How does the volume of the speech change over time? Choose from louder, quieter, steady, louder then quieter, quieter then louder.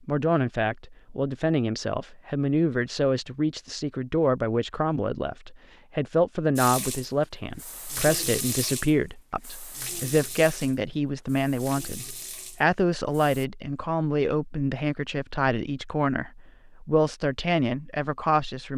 steady.